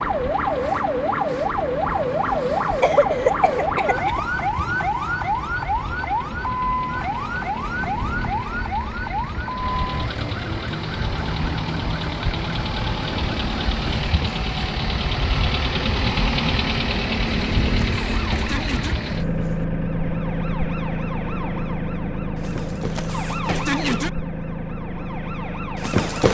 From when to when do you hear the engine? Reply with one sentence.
You can hear the engine from 0.0 to 26.2 s.